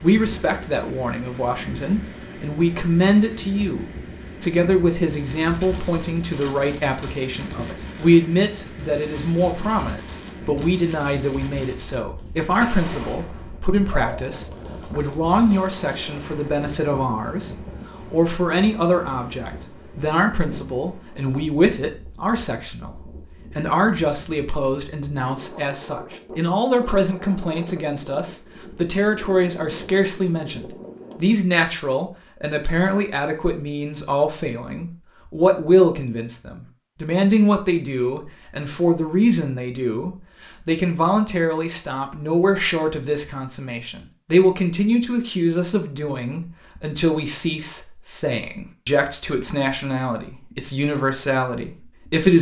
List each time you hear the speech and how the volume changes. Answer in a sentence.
You can hear the speech from 0.0 to 52.3 s, at a steady volume.